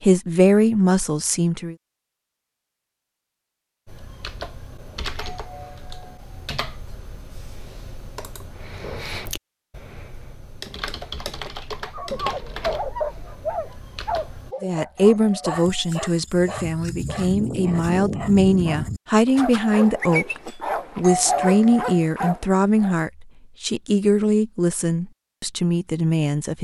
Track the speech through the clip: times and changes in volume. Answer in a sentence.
The speech can be heard briefly from 0.0 to 1.8 s; and from 14.6 to 26.5 s, at a steady volume.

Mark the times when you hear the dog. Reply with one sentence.
The dog can be heard from 11.8 to 22.9 s.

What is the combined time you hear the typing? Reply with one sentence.
You can hear the typing for 11 seconds altogether.